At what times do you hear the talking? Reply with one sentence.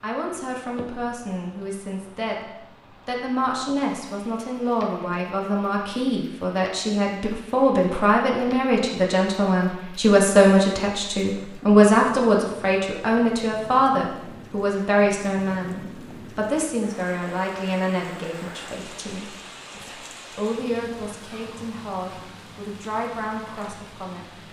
You can hear the talking from 0.0 to 24.4 s.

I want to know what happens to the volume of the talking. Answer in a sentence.
The loudness of the talking goes up, then down.